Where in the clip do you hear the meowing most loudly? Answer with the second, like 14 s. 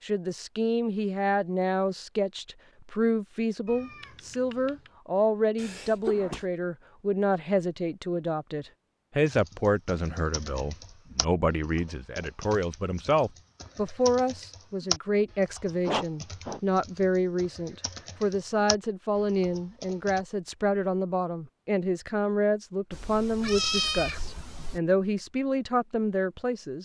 24 s.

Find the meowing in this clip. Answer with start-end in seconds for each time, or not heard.
3.6-4.9, 22.9-24.8.